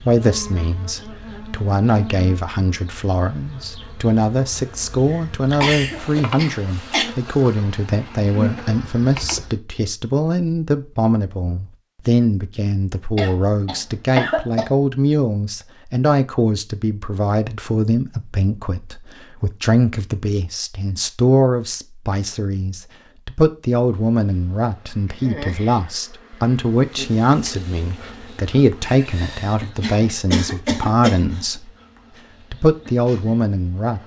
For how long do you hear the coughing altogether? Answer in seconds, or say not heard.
6 s.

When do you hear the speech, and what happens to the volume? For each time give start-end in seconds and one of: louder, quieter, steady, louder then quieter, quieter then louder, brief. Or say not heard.
0.0-31.7 steady
32.5-34.0 brief.